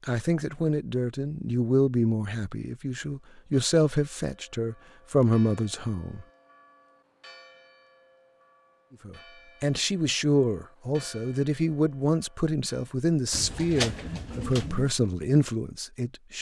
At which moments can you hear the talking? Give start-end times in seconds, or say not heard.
0.1-6.2, 9.1-16.3.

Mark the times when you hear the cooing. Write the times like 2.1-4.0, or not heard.
13.3-14.9.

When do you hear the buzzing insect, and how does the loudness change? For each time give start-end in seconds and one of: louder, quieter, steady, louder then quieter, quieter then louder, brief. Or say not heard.
not heard.